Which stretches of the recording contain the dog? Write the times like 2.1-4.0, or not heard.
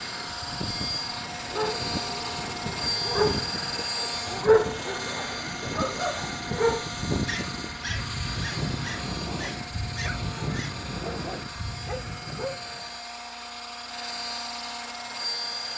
1.3-12.6.